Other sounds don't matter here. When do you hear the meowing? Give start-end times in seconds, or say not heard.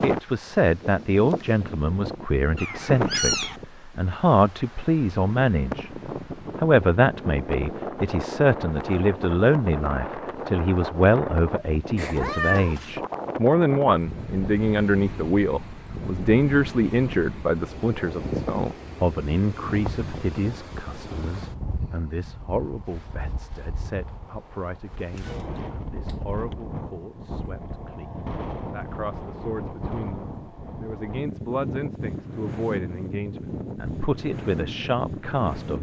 2.5-3.6, 11.9-12.9, 25.1-26.2.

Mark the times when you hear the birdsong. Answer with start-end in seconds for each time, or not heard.
not heard.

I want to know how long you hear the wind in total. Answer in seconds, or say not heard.
36 s.